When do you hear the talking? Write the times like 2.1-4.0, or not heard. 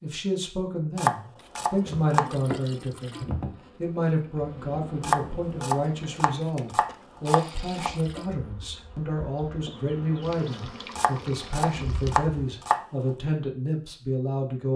0.0-14.7.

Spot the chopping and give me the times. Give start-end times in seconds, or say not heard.
0.9-2.3, 5.0-7.9, 10.9-12.8.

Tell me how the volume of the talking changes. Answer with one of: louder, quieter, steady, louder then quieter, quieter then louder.
steady.